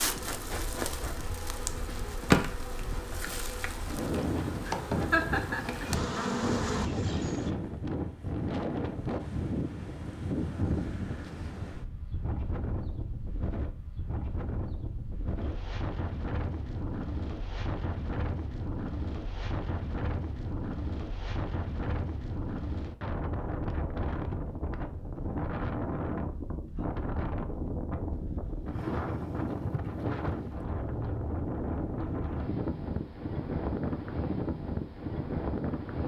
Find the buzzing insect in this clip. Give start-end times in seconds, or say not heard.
0.0-7.5.